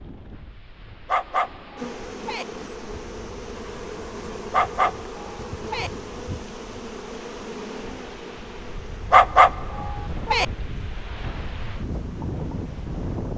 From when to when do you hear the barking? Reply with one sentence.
You can hear the barking from 1.1 to 2.5 s, from 4.5 to 5.9 s and from 9.1 to 10.4 s.